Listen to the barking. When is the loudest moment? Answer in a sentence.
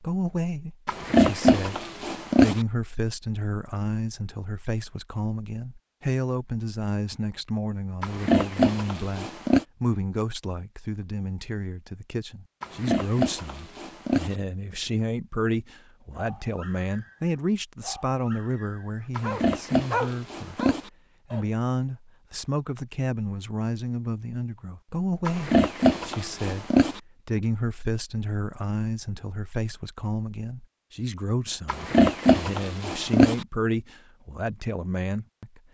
The loudest moment of the barking is at 20 seconds.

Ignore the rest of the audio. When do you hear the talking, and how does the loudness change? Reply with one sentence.
You can hear the talking from 0.0 to 35.6 s, at a steady volume.